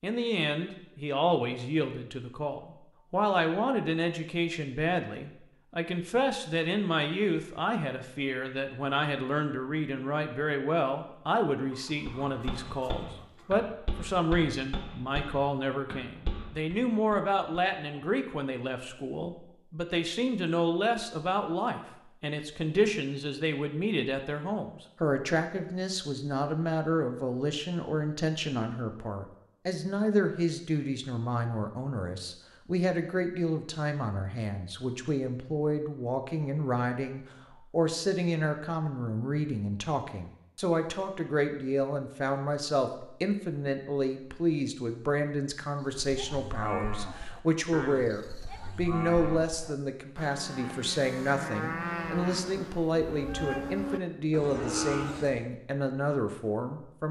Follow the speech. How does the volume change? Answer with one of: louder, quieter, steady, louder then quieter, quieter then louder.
steady.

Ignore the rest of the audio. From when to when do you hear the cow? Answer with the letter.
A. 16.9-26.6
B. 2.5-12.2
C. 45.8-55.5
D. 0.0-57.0
C.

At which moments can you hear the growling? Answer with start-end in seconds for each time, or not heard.
not heard.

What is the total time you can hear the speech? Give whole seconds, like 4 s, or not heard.
57 s.